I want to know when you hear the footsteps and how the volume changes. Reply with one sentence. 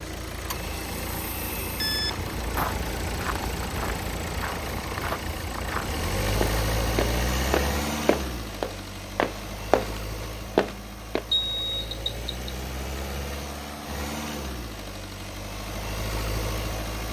You can hear the footsteps from 1.9 to 11.2 s, getting louder.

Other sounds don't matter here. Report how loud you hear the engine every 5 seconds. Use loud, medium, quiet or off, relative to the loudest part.
loud, loud, medium, loud.